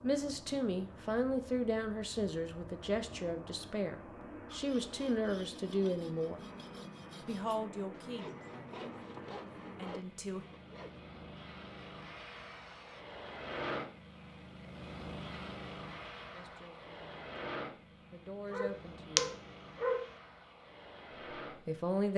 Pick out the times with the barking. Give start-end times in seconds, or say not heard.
18.5-20.1.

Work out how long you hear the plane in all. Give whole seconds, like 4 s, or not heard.
22 s.